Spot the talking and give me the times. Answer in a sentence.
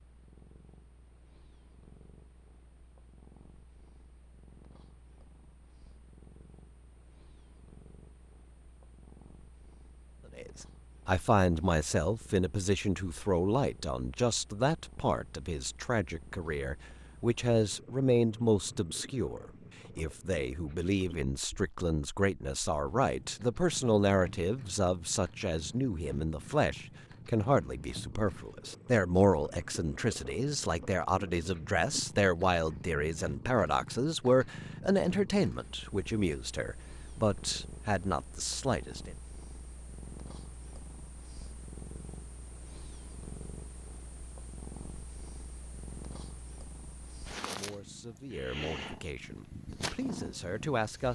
You can hear the talking from 10.3 to 39.1 s and from 47.4 to 51.0 s.